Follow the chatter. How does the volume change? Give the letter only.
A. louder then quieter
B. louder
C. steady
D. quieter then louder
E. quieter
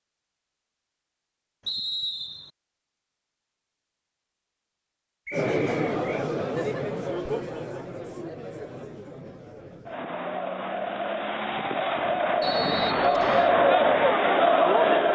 D.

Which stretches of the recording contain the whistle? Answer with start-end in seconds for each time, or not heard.
1.6-2.5, 5.2-6.2, 12.4-13.6.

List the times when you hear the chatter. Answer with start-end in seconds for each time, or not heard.
5.3-15.1.